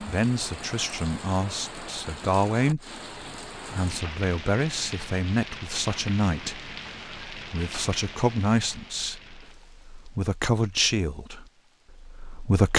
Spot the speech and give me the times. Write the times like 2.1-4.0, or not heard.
0.0-3.0, 3.7-12.7.